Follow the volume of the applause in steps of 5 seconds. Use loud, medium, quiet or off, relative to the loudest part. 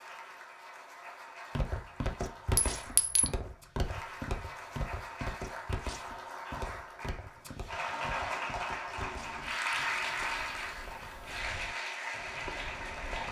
medium, loud, loud.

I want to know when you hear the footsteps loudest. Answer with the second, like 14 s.
3 s.